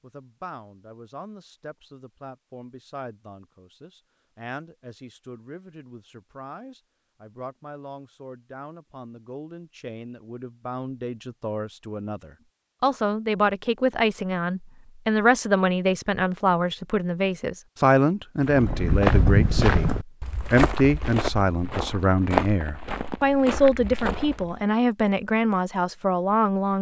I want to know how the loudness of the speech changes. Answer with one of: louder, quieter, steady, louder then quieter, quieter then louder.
louder.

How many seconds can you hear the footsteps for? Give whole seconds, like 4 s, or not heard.
6 s.